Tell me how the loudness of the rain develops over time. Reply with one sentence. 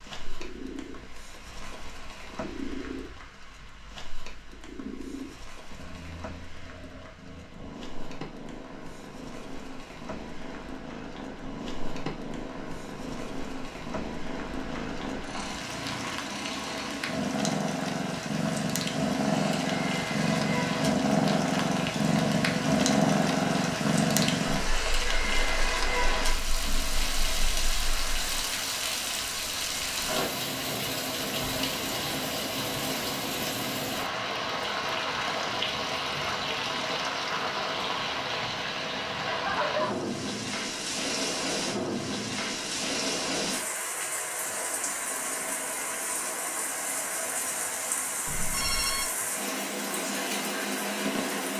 The loudness of the rain goes up.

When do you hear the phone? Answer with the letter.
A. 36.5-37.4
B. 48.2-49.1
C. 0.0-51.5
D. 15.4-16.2
B.